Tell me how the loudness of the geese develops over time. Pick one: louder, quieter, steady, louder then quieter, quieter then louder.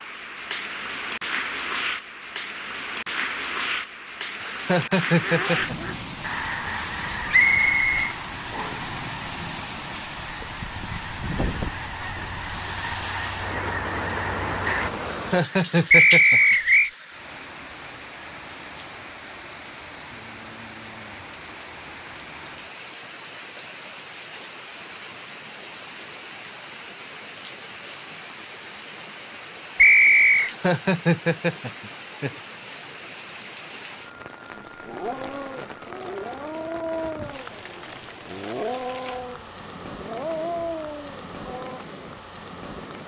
quieter then louder.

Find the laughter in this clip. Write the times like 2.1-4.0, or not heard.
4.4-6.0, 15.1-16.6, 30.4-32.3.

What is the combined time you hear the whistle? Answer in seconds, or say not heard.
3 s.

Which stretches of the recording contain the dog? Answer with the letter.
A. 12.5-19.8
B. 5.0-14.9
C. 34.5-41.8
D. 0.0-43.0
C.